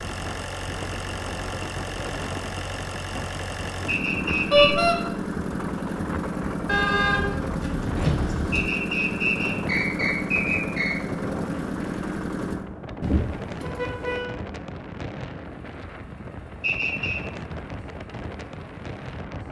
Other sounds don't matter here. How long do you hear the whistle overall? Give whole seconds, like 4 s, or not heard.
4 s.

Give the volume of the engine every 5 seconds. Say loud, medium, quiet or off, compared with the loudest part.
loud, loud, loud, quiet.